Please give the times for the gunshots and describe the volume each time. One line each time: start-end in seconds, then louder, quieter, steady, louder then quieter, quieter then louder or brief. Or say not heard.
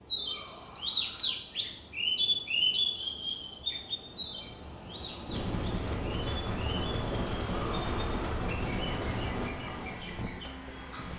5.2-9.5 steady.